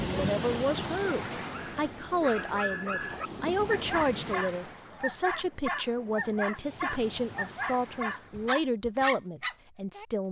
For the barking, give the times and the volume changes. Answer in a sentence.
You can hear the barking from 1.5 to 10.1 s, at a steady volume.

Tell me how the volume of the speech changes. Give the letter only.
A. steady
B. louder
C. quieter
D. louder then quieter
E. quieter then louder
A.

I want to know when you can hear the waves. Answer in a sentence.
The waves can be heard from 0.0 to 8.6 s.